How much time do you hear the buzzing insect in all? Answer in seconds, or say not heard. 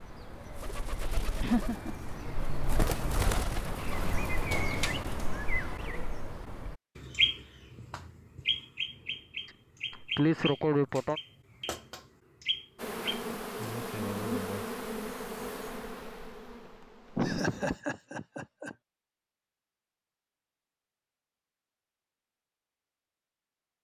5 s.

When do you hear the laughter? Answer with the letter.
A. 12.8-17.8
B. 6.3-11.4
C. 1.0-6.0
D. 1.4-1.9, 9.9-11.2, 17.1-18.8
D.